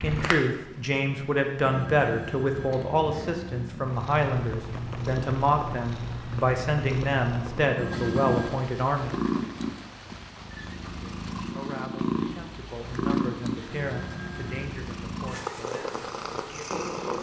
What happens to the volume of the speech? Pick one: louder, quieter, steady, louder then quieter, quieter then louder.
quieter.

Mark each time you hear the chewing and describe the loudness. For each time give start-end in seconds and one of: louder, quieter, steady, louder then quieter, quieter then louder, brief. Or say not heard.
not heard.